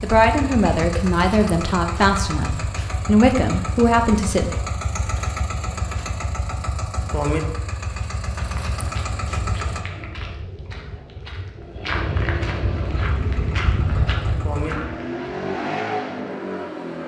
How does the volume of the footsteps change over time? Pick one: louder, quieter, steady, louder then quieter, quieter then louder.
louder.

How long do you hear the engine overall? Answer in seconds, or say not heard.
14 s.